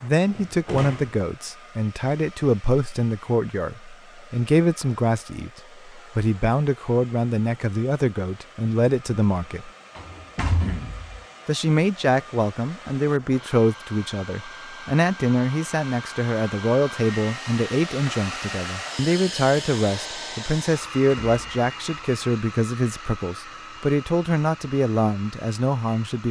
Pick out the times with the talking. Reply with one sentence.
The talking can be heard from 0.0 to 9.7 s and from 11.4 to 26.2 s.